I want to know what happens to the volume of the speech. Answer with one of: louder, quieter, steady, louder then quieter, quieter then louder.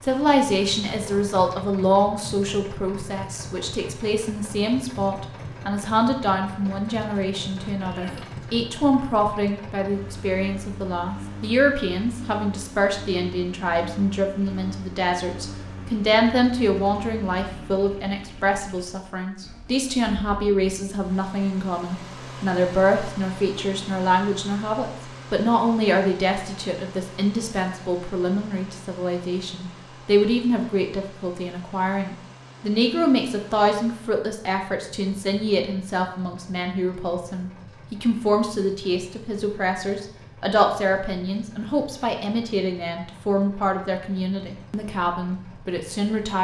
steady.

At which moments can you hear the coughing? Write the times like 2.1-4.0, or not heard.
7.8-8.3.